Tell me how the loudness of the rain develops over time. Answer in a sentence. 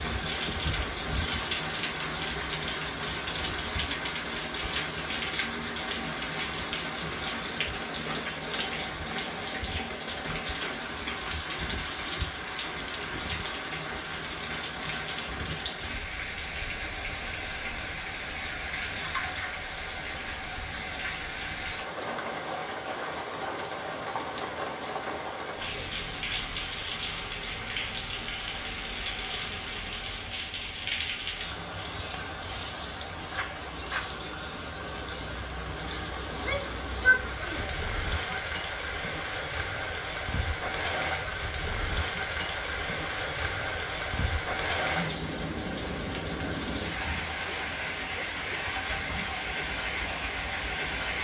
The loudness of the rain stays about the same.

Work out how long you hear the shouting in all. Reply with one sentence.
You can hear the shouting for 2 seconds altogether.